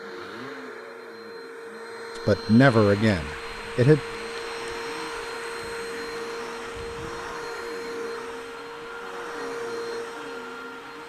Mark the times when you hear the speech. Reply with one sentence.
The speech can be heard from 2.2 to 4.0 s.